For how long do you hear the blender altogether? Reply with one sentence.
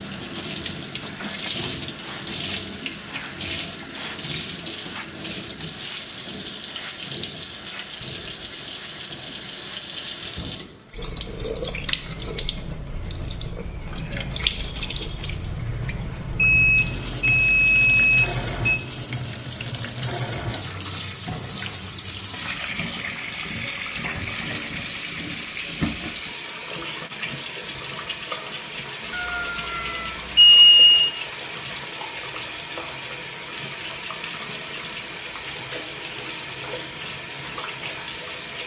You can't hear the blender here.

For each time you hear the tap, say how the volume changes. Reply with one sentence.
You can hear the tap from 0.0 to 38.6 s, at a steady volume.